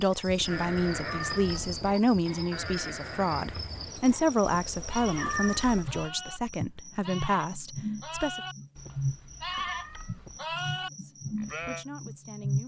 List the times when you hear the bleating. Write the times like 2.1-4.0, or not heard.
0.5-11.8.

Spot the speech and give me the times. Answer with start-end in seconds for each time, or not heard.
0.0-8.4, 11.0-12.6.